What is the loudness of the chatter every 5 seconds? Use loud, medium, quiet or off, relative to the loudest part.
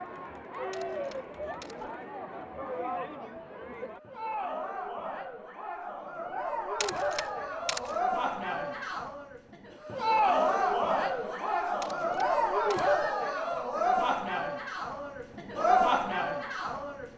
medium, medium, loud, loud.